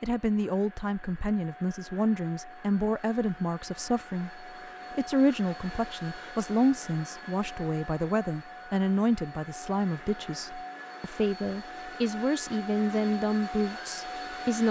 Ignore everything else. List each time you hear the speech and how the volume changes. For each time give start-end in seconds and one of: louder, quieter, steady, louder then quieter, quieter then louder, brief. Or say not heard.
0.0-14.6 steady.